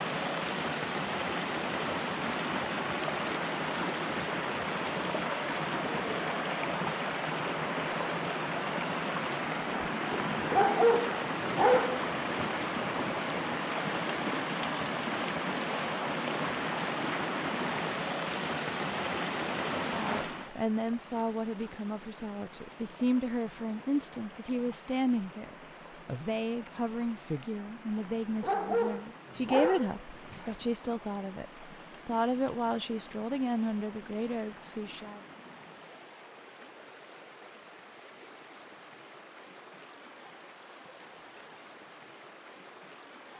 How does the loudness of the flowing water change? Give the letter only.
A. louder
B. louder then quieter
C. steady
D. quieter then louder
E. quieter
E.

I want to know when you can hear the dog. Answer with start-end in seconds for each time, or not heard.
10.5-13.0, 28.4-30.6.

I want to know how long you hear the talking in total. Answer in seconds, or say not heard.
15 s.